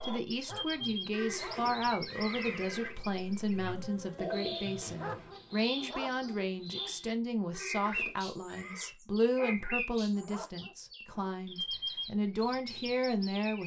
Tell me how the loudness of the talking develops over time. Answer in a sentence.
The loudness of the talking stays about the same.